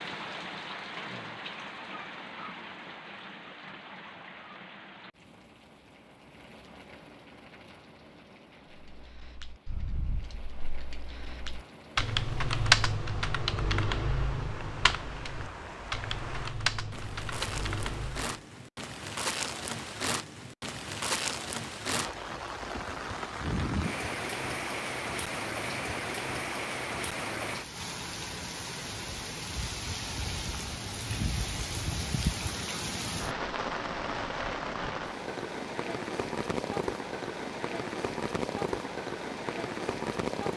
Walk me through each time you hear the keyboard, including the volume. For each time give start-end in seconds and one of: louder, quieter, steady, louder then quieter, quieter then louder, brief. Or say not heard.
8.7-18.4 louder then quieter.